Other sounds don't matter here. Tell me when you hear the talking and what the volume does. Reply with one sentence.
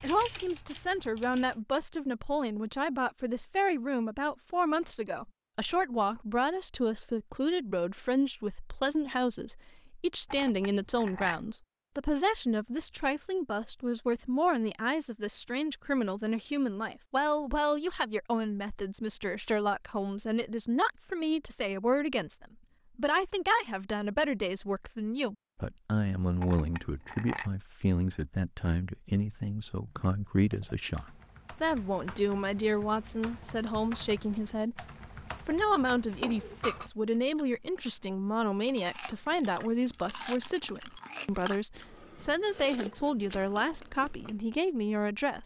The talking can be heard from 0.0 to 34.9 s, at a steady volume; and from 35.5 to 45.4 s, at a steady volume.